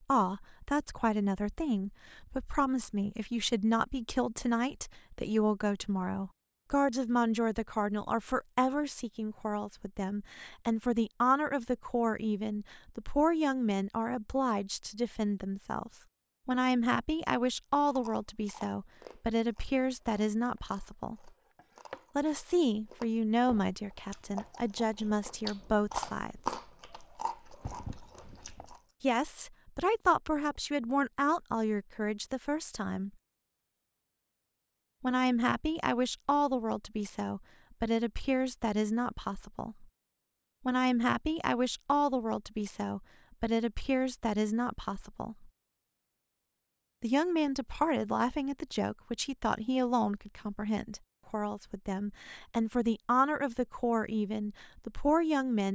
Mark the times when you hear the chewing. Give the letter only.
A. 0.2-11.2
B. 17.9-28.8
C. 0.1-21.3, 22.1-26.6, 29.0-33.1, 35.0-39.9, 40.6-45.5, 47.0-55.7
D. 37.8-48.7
B.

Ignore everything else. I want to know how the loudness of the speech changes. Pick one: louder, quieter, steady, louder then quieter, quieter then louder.
steady.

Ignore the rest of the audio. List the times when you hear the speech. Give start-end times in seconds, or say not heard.
0.1-21.3, 22.1-26.6, 29.0-33.1, 35.0-39.9, 40.6-45.5, 47.0-55.7.